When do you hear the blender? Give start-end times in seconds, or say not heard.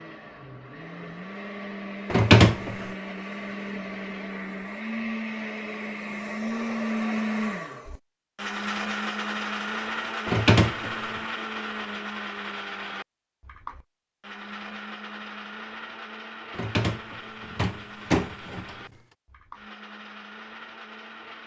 0.0-21.4.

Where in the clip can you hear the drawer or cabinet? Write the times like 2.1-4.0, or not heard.
2.1-2.9, 10.2-11.2, 16.5-18.9.